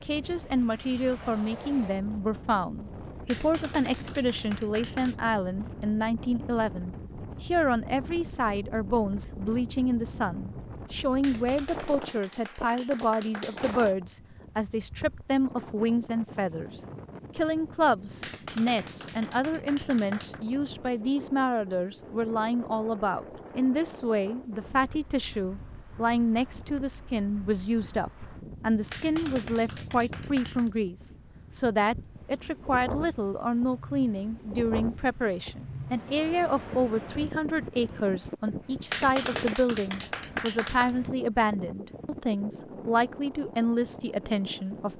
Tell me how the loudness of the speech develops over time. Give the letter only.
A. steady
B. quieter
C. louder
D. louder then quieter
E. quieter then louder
A.